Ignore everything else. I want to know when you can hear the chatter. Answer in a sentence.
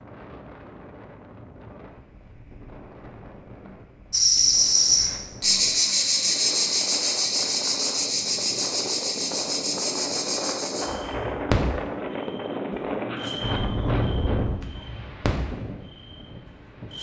The chatter can't be heard in this clip.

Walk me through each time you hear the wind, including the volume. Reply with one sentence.
The wind can be heard from 0.0 to 16.9 s, getting louder.